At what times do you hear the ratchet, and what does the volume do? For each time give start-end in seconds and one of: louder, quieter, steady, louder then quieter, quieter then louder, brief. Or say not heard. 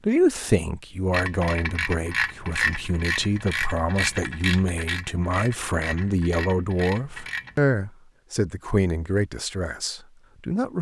1.1-7.6 quieter.